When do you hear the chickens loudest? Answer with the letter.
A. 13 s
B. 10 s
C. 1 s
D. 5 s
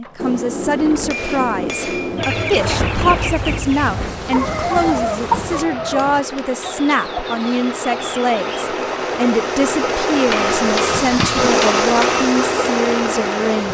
D.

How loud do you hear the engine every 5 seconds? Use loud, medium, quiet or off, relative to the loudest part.
quiet, medium, loud.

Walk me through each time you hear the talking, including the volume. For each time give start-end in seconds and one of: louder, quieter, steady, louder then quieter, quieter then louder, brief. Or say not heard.
0.0-13.7 steady.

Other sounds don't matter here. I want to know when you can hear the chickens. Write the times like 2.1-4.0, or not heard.
2.1-8.7.